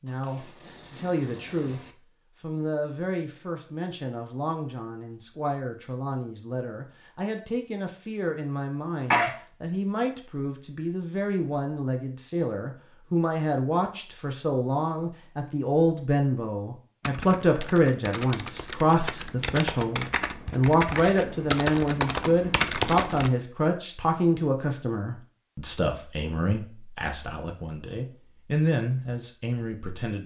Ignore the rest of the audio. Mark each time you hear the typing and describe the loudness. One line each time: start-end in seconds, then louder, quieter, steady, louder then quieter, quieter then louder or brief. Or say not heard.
17.0-23.3 louder.